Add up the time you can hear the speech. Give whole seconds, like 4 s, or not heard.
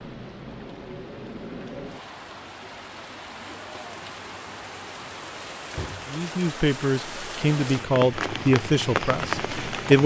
4 s.